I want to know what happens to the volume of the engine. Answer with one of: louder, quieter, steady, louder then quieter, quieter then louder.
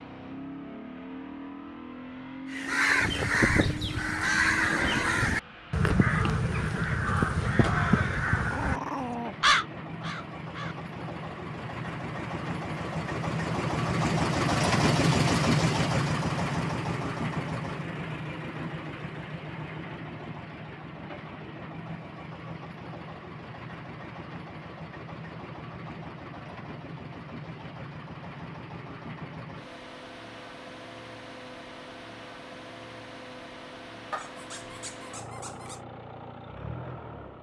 louder then quieter.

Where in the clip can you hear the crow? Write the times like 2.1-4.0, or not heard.
2.5-10.9.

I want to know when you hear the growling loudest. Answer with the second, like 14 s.
9 s.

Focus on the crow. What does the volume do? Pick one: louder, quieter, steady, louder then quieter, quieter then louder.
steady.